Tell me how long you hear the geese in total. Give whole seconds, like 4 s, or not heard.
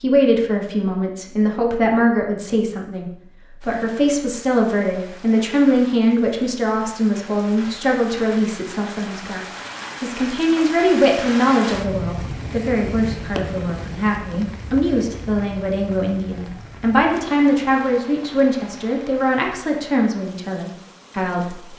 not heard.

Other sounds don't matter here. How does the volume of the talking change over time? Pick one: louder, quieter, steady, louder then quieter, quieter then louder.
steady.